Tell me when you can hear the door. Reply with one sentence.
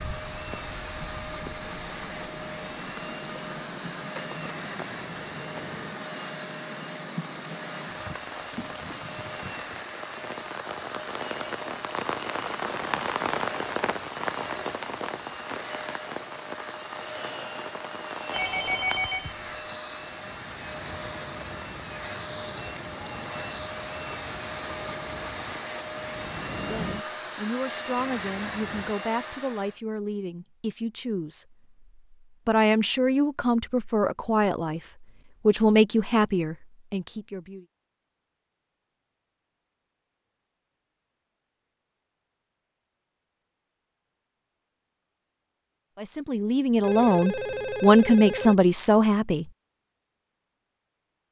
The door can't be heard in this clip.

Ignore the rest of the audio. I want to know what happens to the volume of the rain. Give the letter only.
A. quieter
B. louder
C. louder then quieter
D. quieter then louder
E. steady
C.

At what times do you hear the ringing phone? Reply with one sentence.
You can hear the ringing phone from 4.2 to 6.0 s, from 18.3 to 19.8 s and from 46.8 to 48.5 s.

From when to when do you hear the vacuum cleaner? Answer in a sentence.
The vacuum cleaner can be heard from 0.0 to 29.8 s.